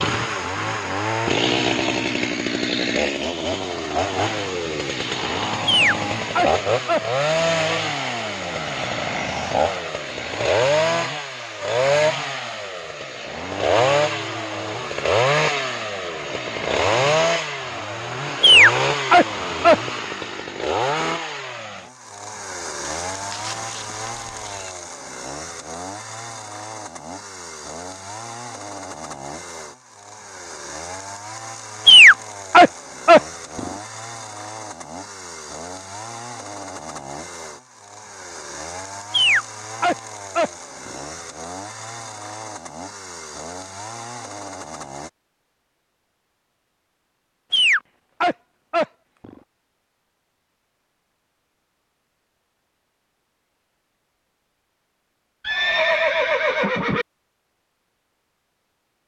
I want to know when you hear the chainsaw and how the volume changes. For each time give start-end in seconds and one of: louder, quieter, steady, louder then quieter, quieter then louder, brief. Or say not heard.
0.0-45.1 quieter.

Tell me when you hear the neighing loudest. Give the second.
56 s.